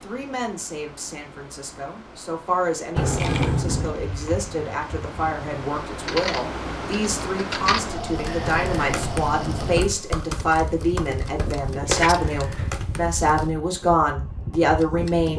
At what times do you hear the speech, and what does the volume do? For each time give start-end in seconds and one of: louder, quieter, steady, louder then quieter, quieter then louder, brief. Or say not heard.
0.0-15.3 louder.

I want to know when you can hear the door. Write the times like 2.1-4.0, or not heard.
3.0-4.0, 8.4-9.9.